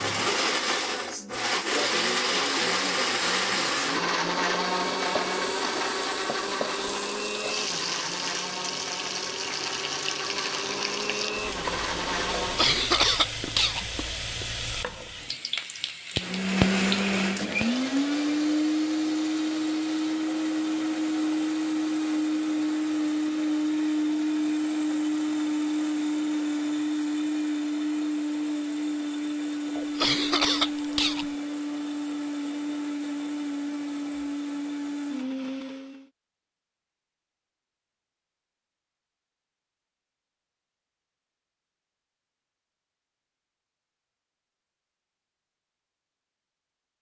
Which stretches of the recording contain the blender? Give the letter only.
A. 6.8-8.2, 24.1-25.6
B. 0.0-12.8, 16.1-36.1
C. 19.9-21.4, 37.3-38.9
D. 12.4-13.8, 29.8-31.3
B.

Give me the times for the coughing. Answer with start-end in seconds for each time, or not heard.
12.4-13.8, 29.8-31.3.